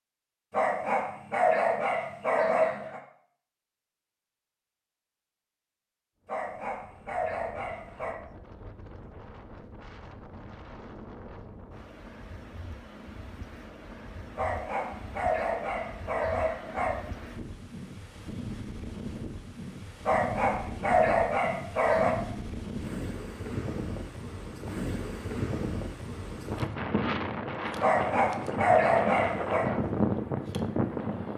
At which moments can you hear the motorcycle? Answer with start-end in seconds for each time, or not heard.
not heard.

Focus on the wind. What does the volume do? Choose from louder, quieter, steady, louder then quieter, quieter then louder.
louder.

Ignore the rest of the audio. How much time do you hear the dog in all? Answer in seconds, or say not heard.
11 s.